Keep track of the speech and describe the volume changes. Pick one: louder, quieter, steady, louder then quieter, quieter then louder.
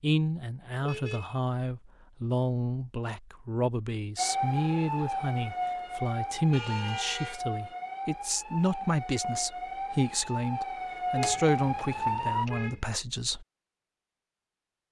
steady.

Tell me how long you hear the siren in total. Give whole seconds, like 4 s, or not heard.
8 s.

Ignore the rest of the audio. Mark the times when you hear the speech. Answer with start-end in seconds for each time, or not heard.
0.0-13.4.